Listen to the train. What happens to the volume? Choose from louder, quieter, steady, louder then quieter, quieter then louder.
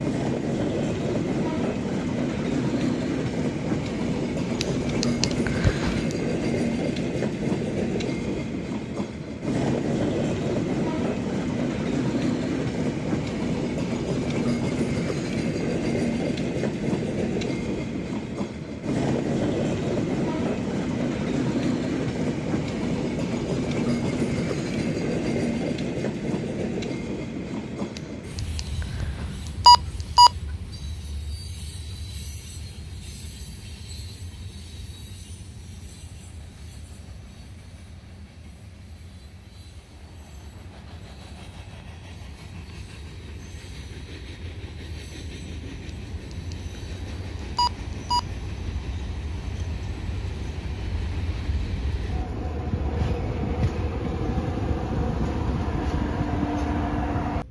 quieter then louder.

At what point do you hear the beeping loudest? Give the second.
30 s.